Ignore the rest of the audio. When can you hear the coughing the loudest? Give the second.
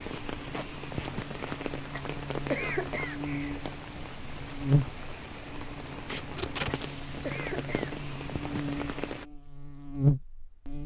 3 s.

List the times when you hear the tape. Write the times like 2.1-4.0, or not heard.
0.1-1.6, 6.0-6.8.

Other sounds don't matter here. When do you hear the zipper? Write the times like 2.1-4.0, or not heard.
not heard.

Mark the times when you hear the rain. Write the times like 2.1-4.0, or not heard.
0.0-9.2.